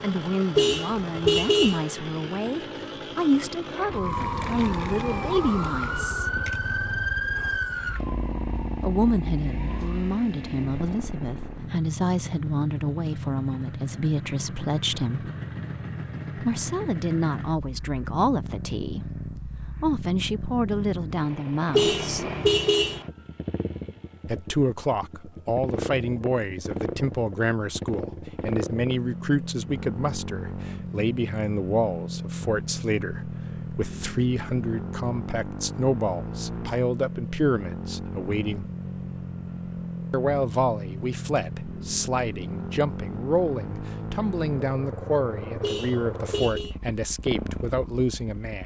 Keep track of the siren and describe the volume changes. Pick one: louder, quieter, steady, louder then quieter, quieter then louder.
quieter.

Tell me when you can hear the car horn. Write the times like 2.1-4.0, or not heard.
0.6-1.9, 21.7-23.0, 45.6-46.8.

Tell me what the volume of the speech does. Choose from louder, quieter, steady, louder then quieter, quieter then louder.
steady.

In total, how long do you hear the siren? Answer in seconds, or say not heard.
6 s.